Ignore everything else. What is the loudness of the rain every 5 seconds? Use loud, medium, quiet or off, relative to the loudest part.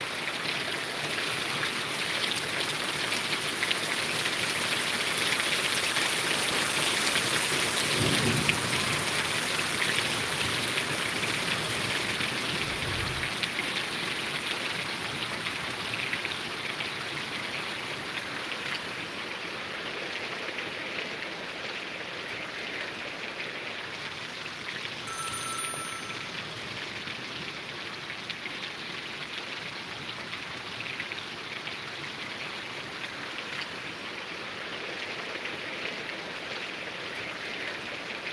loud, loud, loud, medium, medium, medium, medium, medium.